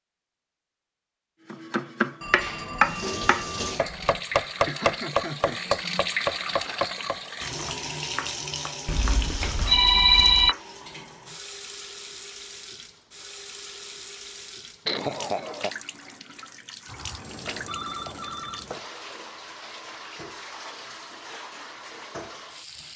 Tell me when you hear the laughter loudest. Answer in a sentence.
The volume of the laughter peaks at 15 seconds.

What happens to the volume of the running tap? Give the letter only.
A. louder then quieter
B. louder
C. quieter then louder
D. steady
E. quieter
E.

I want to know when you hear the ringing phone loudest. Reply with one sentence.
The loudest moment of the ringing phone is at 10 seconds.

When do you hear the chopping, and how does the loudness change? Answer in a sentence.
The chopping can be heard from 1.5 to 10.6 s, getting quieter.